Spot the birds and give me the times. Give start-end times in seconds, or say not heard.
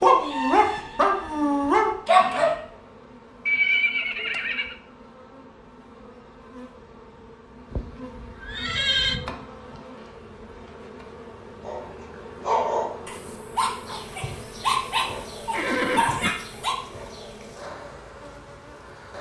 not heard.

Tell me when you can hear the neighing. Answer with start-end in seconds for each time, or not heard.
3.5-4.8, 7.7-9.2, 15.5-16.3.